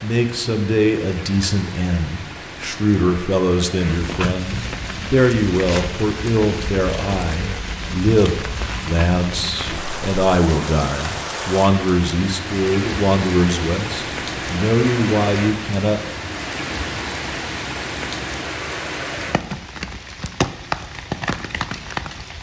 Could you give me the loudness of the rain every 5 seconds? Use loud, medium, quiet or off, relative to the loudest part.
medium, loud, loud, loud, loud.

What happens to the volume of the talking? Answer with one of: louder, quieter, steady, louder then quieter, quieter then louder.
steady.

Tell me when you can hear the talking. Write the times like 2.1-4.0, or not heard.
0.0-16.0.